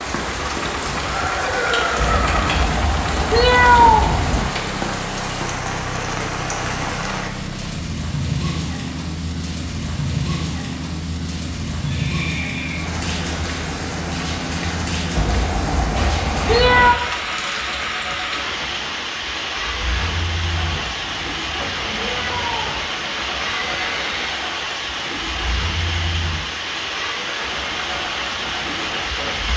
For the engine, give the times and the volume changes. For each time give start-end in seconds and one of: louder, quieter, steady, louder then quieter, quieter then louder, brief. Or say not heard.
0.0-29.5 steady.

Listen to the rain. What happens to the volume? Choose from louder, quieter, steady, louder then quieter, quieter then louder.
steady.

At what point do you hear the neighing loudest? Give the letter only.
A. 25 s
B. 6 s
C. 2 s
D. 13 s
C.